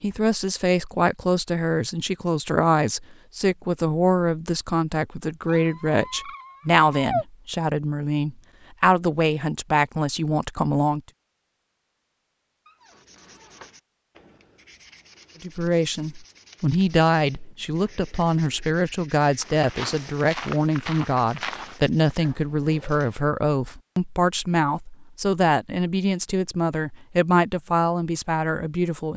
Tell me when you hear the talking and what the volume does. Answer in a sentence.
The talking can be heard from 0.0 to 11.0 s, at a steady volume; and from 15.4 to 29.1 s, at a steady volume.